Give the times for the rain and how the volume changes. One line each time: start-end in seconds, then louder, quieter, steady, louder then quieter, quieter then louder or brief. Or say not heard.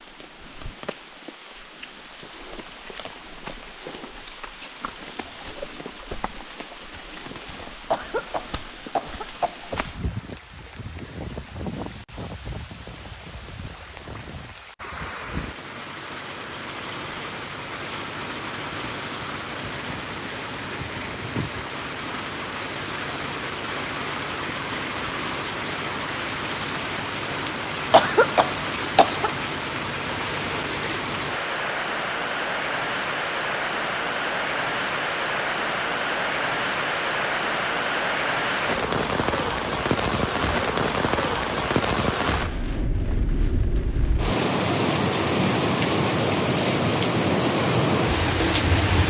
0.0-49.0 louder.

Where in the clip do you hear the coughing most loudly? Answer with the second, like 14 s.
28 s.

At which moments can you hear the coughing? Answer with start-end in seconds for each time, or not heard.
7.9-9.7, 27.9-29.3.